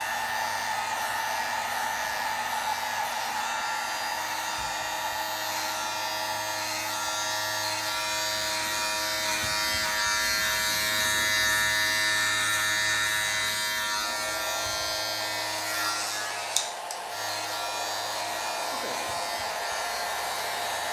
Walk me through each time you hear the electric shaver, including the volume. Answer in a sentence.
The electric shaver can be heard from 0.0 to 20.8 s, getting louder then quieter.